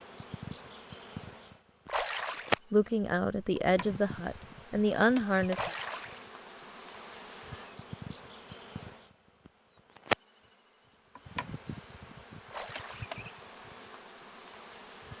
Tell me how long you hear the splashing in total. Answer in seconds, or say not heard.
2 s.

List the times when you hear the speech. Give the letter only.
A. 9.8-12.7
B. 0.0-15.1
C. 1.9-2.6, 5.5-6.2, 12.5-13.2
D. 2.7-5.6
D.